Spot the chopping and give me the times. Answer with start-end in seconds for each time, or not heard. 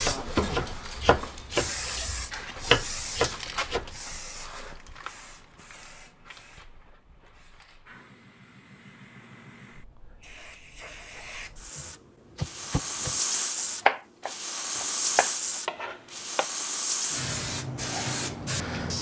0.0-4.0, 11.8-13.2, 13.8-16.4.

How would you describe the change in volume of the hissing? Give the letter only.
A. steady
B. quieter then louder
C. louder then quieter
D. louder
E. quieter
B.